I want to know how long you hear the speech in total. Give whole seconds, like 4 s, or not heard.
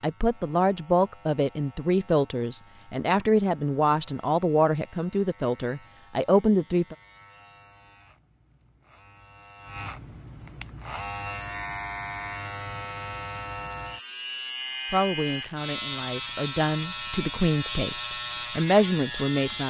12 s.